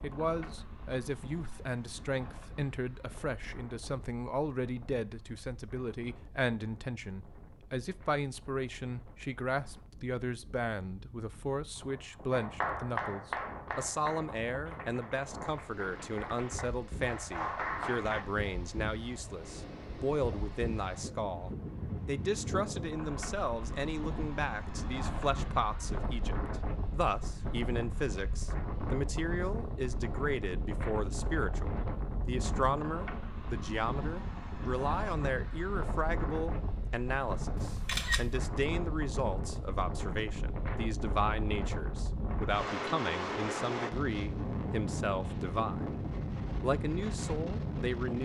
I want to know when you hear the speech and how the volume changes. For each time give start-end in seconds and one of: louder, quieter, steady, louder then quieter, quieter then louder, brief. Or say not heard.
0.0-46.0 steady
46.6-48.2 brief.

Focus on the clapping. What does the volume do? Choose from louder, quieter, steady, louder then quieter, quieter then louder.
quieter then louder.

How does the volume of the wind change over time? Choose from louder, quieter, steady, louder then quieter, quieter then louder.
louder.